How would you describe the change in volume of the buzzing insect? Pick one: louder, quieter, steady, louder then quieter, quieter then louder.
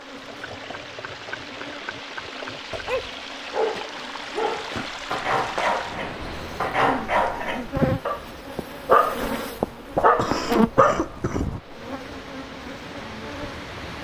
louder then quieter.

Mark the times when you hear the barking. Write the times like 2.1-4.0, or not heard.
2.7-11.6.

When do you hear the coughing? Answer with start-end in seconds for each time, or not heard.
0.2-1.6, 6.7-7.7, 10.2-11.4.